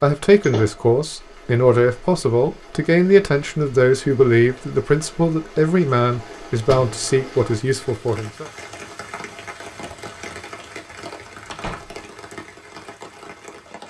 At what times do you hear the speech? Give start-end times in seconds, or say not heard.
0.0-8.4.